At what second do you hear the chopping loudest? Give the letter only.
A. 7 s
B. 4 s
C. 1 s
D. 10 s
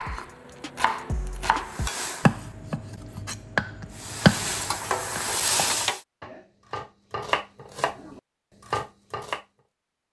B.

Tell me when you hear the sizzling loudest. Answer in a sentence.
The volume of the sizzling peaks at 5 seconds.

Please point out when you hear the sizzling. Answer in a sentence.
You can hear the sizzling from 0.1 to 2.6 s and from 4.0 to 6.0 s.